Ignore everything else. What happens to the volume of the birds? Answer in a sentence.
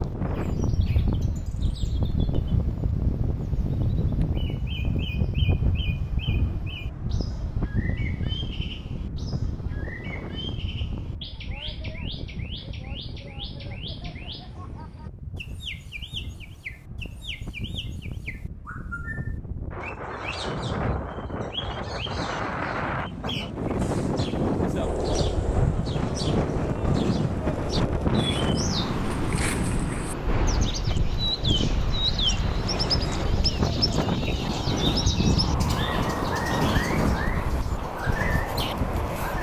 The volume of the birds goes up.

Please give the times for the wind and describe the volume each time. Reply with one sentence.
You can hear the wind from 0.0 to 39.3 s, getting quieter then louder.